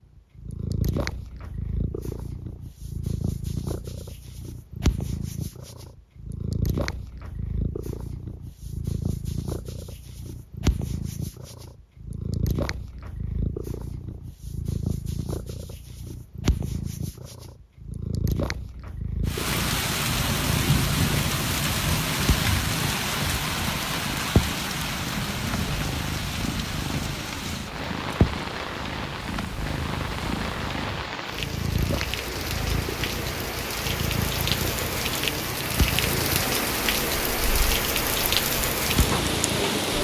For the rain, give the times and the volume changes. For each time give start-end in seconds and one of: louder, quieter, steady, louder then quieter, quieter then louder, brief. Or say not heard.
19.2-39.9 quieter then louder.